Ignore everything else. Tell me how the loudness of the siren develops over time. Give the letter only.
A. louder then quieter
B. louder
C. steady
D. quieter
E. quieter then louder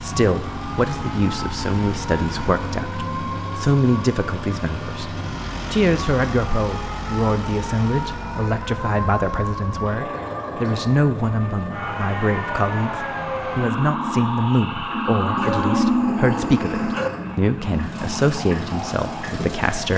B.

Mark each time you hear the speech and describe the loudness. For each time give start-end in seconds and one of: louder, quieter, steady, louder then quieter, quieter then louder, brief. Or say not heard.
0.0-19.9 steady.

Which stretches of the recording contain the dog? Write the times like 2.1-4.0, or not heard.
15.3-17.1.